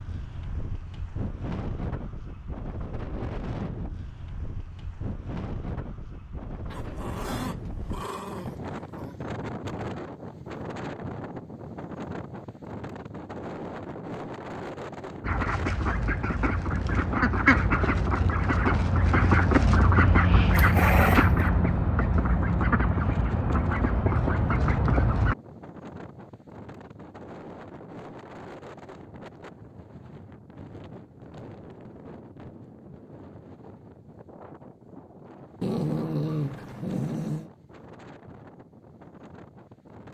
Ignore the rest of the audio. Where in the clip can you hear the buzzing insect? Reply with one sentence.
The buzzing insect can't be heard in this clip.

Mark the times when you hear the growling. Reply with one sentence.
The growling can be heard from 6.7 to 9.2 s, from 20.6 to 21.5 s and from 35.6 to 37.5 s.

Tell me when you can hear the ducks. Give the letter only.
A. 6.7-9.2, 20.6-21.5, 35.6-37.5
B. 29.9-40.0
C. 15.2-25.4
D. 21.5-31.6
C.